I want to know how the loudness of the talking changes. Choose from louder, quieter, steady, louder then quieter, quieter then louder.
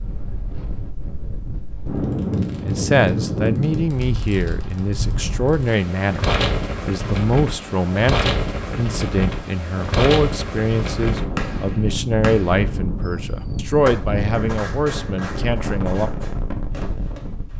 steady.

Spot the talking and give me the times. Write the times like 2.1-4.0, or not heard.
2.6-16.1.